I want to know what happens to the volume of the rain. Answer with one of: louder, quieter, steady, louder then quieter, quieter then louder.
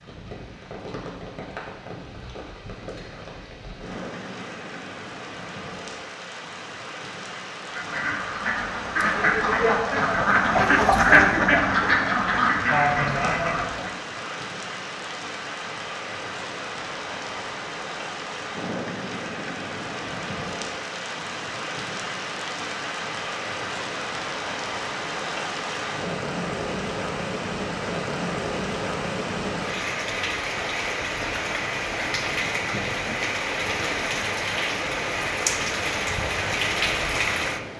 louder.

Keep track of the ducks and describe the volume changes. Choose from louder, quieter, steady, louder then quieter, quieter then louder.
louder then quieter.